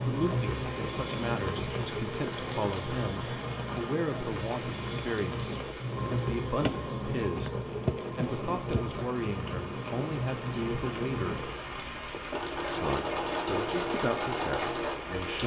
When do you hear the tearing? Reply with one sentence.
The tearing can be heard from 6.6 to 9.1 s.